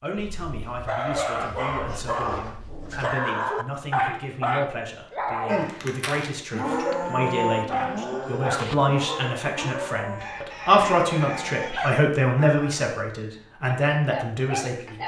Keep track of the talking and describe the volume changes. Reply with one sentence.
The loudness of the talking goes up.